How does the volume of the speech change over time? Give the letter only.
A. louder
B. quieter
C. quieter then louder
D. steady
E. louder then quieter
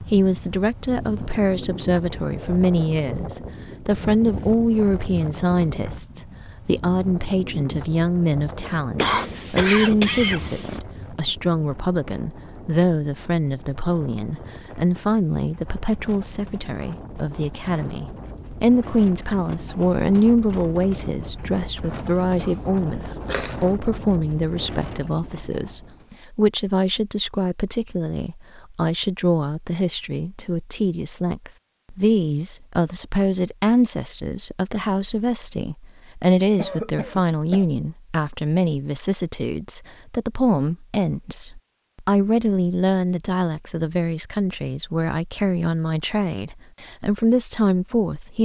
D.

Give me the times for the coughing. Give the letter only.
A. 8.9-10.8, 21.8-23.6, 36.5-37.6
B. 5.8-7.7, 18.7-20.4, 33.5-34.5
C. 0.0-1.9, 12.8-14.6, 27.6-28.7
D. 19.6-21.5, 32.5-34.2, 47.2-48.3
A.